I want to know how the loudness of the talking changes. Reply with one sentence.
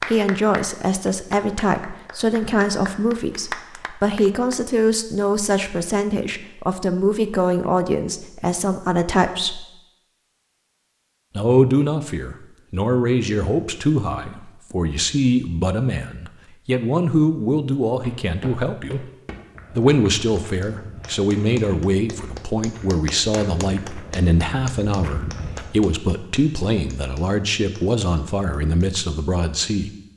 The volume of the talking stays about the same.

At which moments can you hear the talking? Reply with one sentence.
You can hear the talking from 0.1 to 9.7 s, from 11.3 to 19.1 s and from 19.8 to 29.9 s.